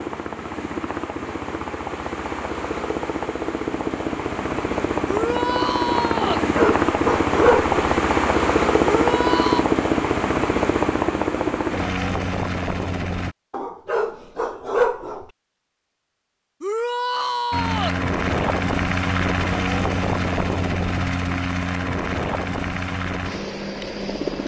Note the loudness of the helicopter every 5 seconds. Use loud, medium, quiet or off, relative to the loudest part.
medium, loud, loud, loud, medium.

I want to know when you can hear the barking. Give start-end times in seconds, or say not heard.
6.2-7.7, 13.5-15.2.